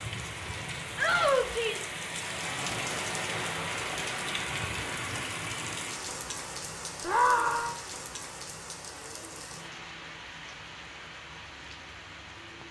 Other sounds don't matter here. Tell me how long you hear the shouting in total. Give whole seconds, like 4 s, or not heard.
2 s.